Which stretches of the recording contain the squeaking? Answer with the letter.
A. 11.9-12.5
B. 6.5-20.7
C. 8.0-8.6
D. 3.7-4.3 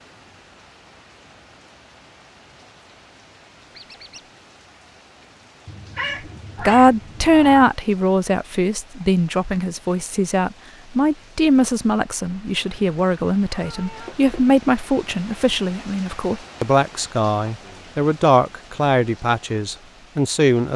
D.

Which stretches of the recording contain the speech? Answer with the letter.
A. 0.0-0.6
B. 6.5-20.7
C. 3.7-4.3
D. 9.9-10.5
B.